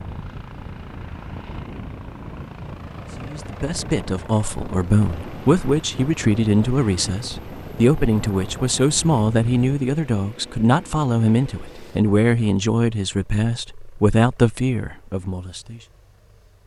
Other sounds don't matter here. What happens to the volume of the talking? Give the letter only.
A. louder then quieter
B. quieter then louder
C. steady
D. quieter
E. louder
C.